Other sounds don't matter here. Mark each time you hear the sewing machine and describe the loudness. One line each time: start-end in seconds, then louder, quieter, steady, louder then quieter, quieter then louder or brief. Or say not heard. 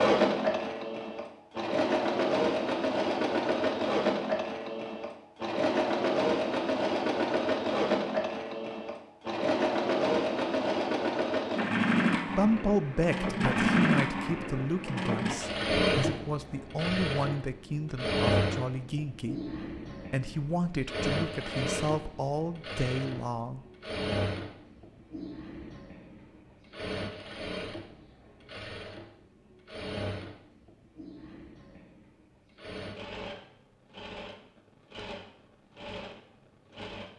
0.0-37.1 quieter.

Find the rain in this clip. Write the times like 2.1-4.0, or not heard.
not heard.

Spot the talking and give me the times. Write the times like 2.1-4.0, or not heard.
12.2-23.6.